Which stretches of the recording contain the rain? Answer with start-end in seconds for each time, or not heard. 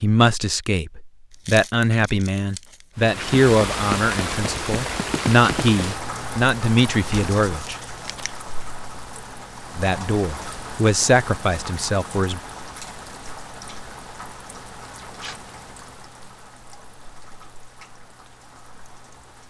3.0-19.4.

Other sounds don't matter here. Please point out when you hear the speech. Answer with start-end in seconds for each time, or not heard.
0.0-7.8, 9.8-12.4.